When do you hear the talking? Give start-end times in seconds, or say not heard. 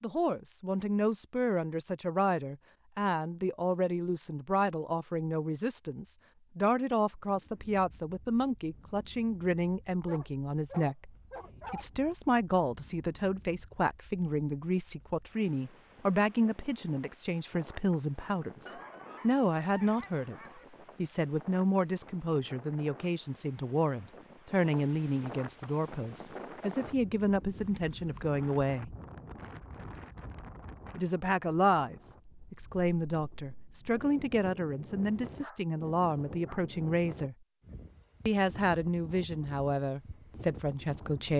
0.0-20.4, 20.9-28.9, 30.9-37.4, 38.2-41.3.